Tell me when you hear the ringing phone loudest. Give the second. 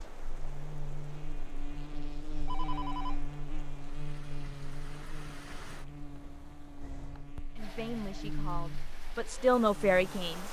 3 s.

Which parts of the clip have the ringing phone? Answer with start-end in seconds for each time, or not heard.
2.5-3.1, 7.5-8.3.